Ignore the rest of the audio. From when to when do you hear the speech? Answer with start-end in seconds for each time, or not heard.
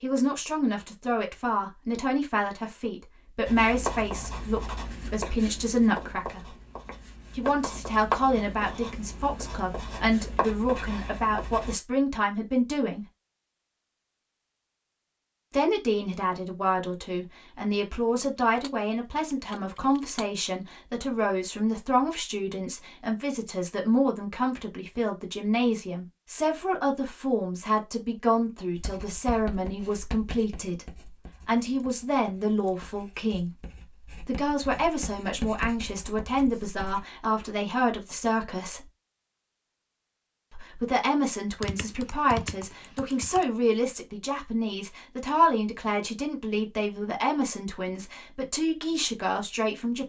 0.0-6.5, 7.3-13.1, 15.5-30.9, 31.4-33.5, 34.2-38.9, 40.5-50.0.